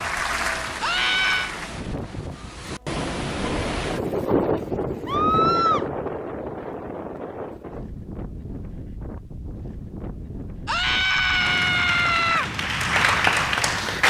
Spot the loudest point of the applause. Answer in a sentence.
The loudest moment of the applause is at 14 seconds.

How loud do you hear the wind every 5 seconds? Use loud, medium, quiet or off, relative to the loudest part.
loud, loud, medium.